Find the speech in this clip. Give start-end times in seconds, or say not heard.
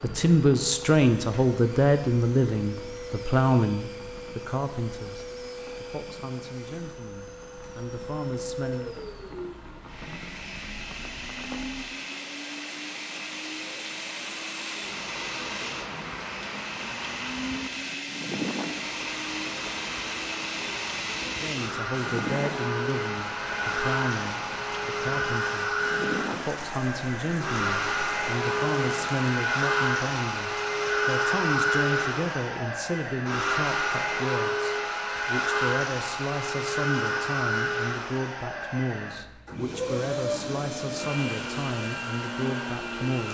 0.0-8.9, 21.4-43.3.